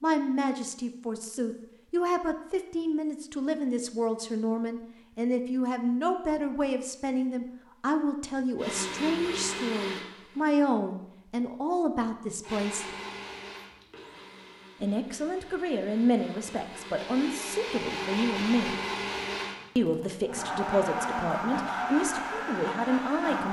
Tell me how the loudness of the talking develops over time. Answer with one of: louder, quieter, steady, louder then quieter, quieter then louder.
steady.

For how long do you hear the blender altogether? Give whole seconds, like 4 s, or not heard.
13 s.